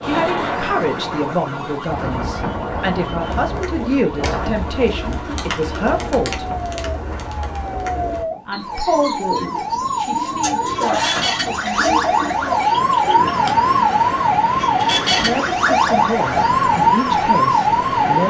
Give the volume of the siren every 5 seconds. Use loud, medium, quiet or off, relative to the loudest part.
quiet, medium, loud, loud.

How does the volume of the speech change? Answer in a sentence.
The volume of the speech goes down, then up.